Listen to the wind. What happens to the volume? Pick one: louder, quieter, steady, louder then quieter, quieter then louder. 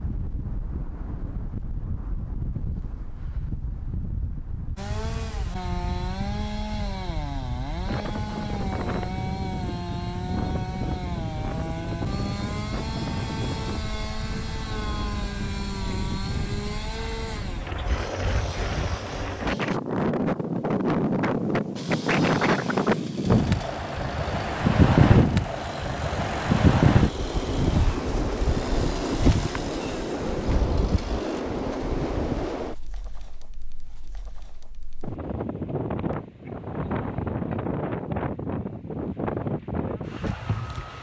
louder then quieter.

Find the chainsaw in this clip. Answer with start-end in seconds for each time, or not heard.
4.8-19.8, 21.8-31.4.